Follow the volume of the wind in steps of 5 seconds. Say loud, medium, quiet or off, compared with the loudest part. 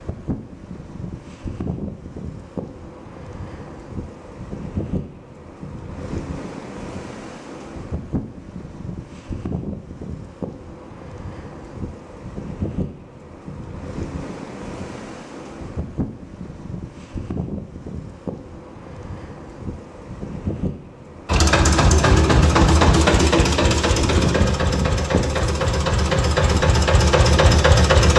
medium, medium, medium, medium, loud, loud.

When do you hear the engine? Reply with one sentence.
The engine can be heard from 21.2 to 28.1 s.